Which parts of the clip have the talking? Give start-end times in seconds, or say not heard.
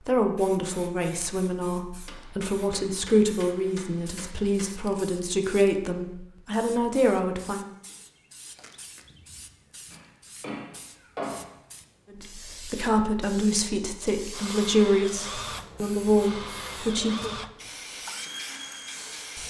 0.1-7.7, 12.1-17.4.